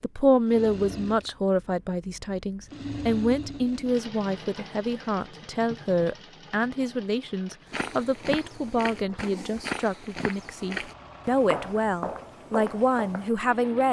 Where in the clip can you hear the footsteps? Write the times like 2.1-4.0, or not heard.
7.7-13.3.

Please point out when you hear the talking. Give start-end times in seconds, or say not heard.
0.0-13.8.